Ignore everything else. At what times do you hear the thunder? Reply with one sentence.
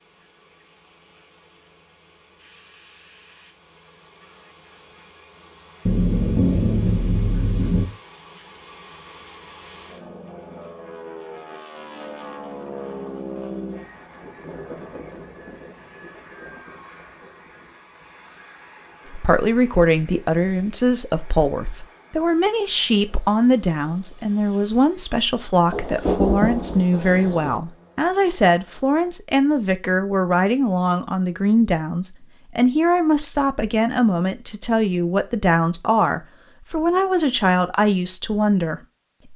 You can hear the thunder from 5.8 to 7.8 s and from 25.7 to 27.6 s.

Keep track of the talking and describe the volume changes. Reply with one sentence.
The loudness of the talking stays about the same.